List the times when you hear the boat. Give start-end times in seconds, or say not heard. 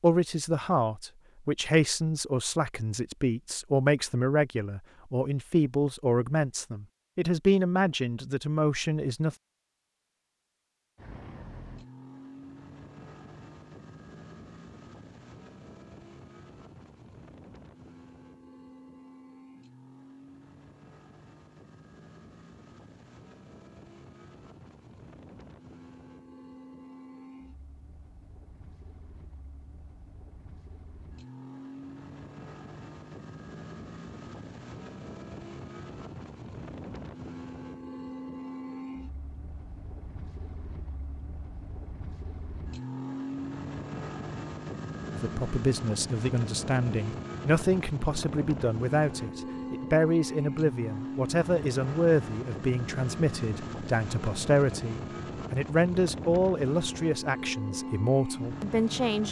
10.9-59.2.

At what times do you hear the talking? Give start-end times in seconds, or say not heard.
0.0-9.3, 45.1-59.2.